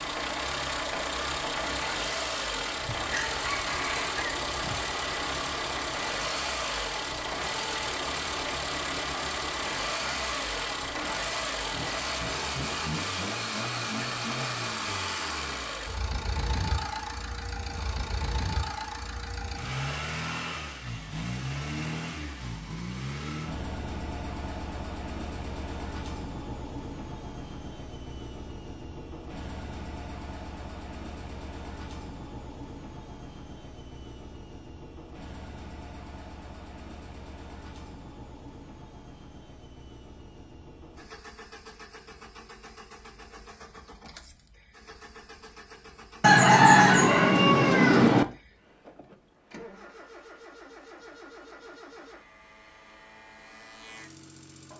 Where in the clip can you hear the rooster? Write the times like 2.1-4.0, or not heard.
2.9-4.8, 46.2-48.2.